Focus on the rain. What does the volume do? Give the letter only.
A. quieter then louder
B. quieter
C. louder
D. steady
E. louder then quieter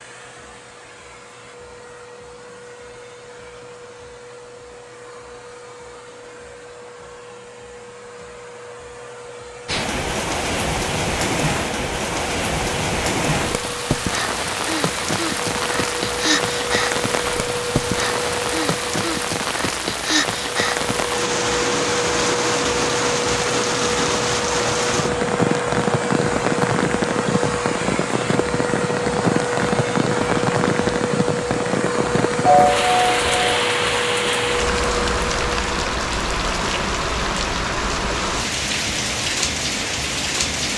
D.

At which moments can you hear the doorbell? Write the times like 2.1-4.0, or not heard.
32.5-33.6.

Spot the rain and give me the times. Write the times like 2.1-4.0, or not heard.
9.7-40.7.